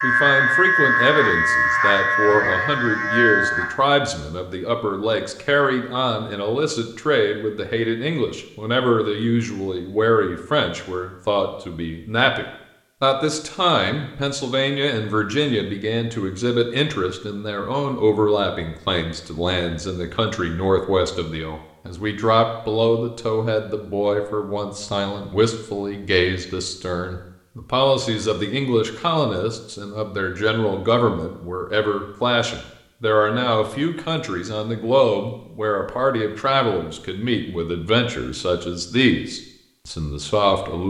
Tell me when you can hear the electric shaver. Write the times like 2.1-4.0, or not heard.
0.0-3.8.